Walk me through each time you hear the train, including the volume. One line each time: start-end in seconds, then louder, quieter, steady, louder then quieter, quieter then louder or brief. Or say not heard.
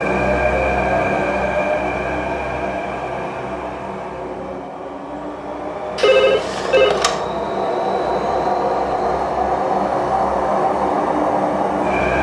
0.0-12.1 quieter then louder.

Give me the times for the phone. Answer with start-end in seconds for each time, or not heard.
6.0-7.2.